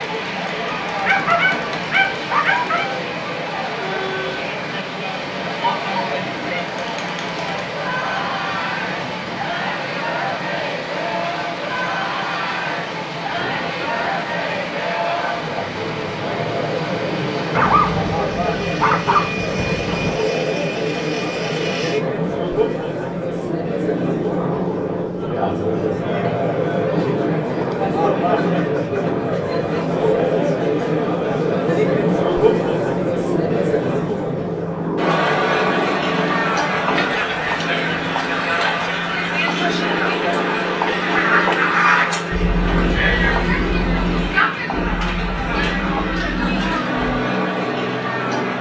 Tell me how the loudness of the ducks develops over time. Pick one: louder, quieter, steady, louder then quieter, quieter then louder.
quieter.